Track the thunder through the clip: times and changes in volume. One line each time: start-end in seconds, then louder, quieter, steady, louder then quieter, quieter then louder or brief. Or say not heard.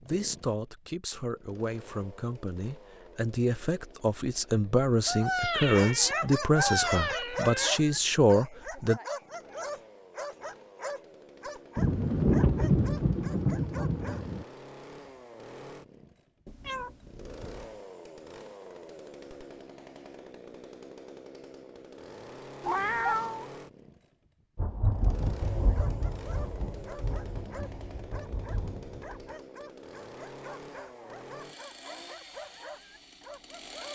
11.8-14.4 brief
24.6-29.2 quieter.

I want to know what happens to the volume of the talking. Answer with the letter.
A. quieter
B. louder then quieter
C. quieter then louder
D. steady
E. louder
E.